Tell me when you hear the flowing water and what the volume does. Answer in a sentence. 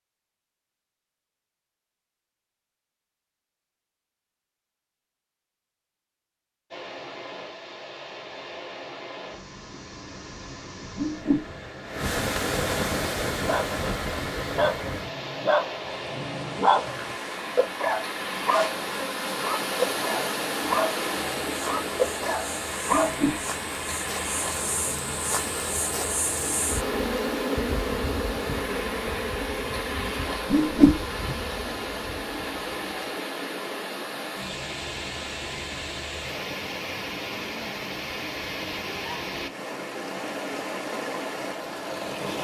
The flowing water can be heard from 6.7 to 42.4 s, at a steady volume.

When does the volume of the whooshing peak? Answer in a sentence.
The volume of the whooshing peaks at 31 seconds.